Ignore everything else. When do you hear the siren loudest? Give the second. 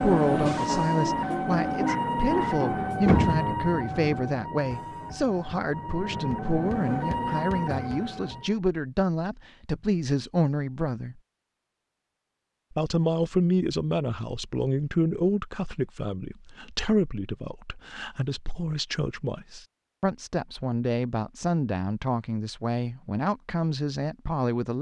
3 s.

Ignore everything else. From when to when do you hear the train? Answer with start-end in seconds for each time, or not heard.
not heard.